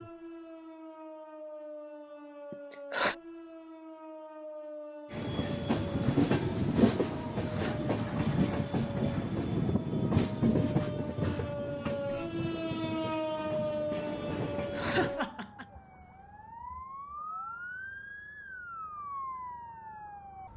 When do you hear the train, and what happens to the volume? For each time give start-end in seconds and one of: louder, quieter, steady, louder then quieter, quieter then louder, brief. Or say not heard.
5.1-15.2 quieter.